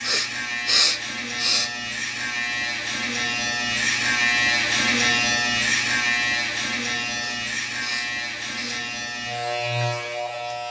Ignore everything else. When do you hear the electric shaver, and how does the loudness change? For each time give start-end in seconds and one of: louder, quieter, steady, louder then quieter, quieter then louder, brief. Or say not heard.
0.0-10.6 louder then quieter.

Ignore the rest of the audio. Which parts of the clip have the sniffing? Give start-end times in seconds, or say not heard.
0.0-1.7, 7.2-8.8.